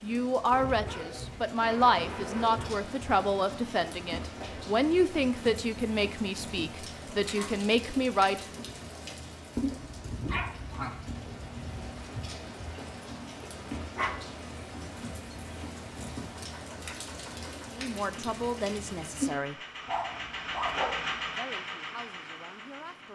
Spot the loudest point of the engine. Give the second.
21 s.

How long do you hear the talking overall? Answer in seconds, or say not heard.
12 s.